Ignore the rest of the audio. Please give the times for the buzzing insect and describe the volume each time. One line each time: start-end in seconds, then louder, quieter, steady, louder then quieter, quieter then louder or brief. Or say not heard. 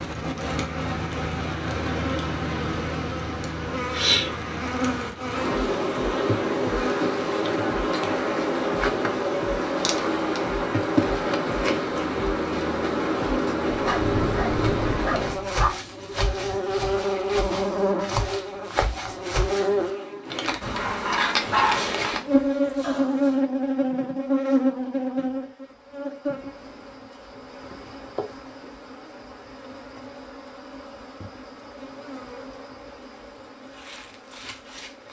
0.0-35.0 quieter.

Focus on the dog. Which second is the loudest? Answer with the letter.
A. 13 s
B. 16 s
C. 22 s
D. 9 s
C.